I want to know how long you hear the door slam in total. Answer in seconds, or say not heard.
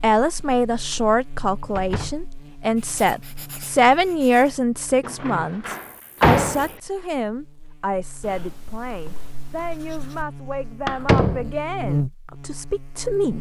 3 s.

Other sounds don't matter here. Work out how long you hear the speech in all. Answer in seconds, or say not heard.
13 s.